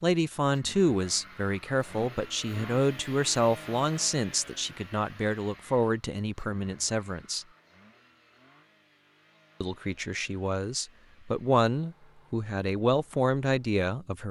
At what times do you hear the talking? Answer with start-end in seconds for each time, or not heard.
0.0-7.5, 9.6-14.2.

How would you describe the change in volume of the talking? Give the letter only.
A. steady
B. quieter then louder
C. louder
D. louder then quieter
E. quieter
A.